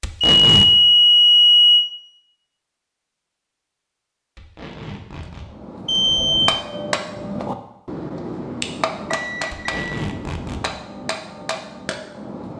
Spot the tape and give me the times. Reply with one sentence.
The tape can be heard from 0.0 to 0.7 s, from 4.3 to 5.5 s and from 9.5 to 10.7 s.